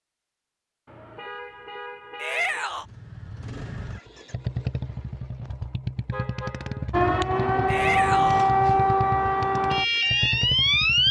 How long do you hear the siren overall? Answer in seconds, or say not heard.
4 s.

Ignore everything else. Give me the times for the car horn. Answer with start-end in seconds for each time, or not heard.
0.8-2.7, 6.1-6.9.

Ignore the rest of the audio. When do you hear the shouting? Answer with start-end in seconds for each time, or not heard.
2.1-2.9, 7.7-8.5.